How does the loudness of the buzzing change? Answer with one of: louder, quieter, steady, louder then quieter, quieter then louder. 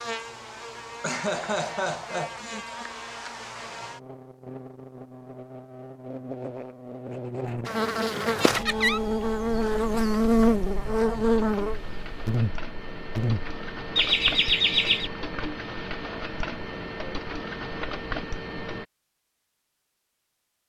louder.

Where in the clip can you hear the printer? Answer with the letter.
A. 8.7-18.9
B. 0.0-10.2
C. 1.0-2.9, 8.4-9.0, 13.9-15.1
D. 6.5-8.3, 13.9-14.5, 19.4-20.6
A.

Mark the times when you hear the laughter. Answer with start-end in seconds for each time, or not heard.
1.0-2.9, 8.4-9.0, 13.9-15.1.